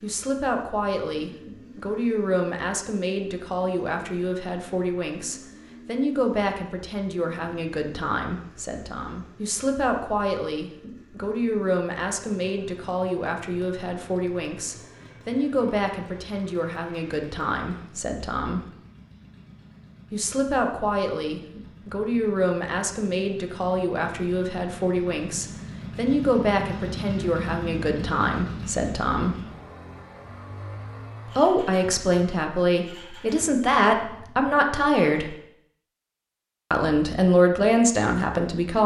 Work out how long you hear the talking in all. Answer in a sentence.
The talking can be heard for 34 seconds in total.